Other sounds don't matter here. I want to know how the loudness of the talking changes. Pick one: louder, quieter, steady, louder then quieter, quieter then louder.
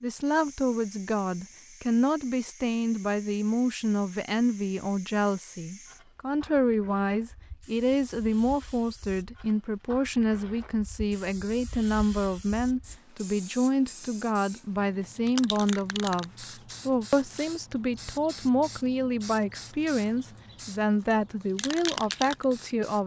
steady.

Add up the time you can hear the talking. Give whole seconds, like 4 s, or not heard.
23 s.